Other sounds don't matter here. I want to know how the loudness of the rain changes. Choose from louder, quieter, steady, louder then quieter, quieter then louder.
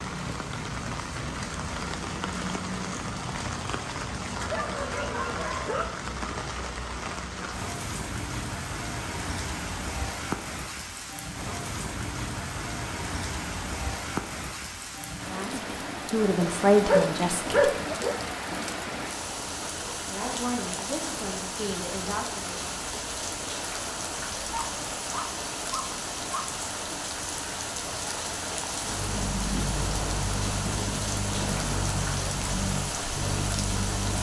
steady.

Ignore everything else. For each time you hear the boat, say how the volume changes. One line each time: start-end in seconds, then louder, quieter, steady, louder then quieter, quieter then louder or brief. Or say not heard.
28.7-34.1 steady.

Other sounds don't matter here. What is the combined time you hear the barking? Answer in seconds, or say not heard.
5 s.